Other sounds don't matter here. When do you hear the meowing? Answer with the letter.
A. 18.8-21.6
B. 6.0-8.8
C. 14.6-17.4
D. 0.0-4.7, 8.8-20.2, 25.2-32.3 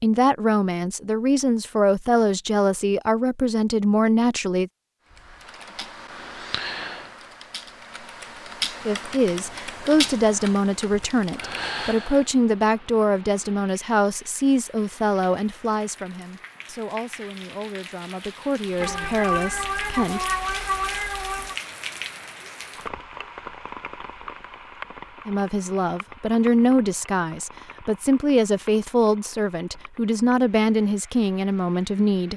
A.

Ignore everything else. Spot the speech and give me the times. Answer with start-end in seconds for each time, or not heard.
0.0-4.7, 8.8-20.2, 25.2-32.3.